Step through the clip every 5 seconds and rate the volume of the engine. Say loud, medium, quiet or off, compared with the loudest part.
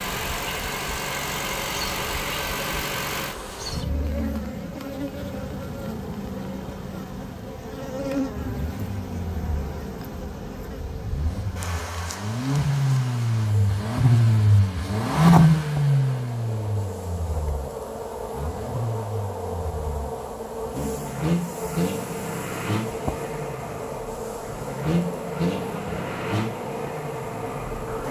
medium, quiet, loud, loud, medium, medium.